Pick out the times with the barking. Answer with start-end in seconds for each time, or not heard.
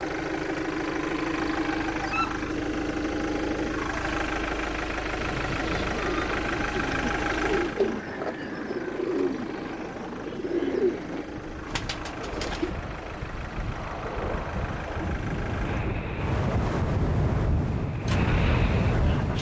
1.9-2.4.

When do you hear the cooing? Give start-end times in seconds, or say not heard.
5.2-12.8.